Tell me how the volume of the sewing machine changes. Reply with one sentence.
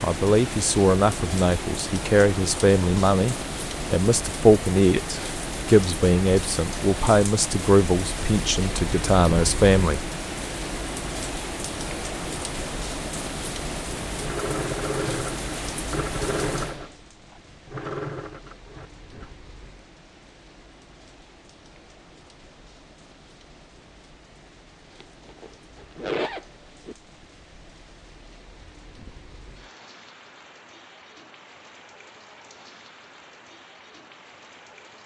The volume of the sewing machine goes down.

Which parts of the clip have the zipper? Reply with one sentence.
You can hear the zipper from 25.0 to 26.9 s.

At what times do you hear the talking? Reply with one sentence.
You can hear the talking from 0.0 to 10.1 s.